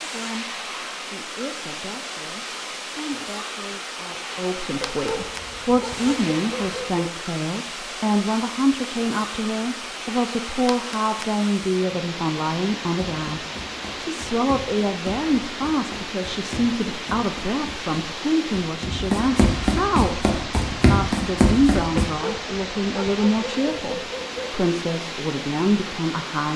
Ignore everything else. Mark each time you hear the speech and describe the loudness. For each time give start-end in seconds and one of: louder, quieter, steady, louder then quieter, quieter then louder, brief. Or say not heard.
0.0-26.5 louder.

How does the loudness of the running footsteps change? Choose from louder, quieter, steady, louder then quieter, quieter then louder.
louder.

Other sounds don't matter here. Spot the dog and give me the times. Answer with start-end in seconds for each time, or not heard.
4.9-7.2, 22.1-24.6.